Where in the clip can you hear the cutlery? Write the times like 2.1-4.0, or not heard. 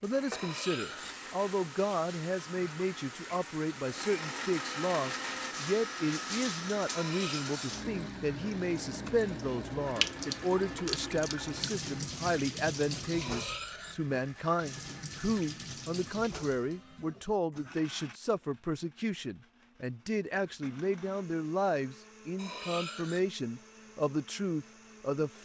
0.3-1.2, 6.8-7.7, 13.1-14.0, 22.4-23.2.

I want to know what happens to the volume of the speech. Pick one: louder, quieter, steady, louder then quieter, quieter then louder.
steady.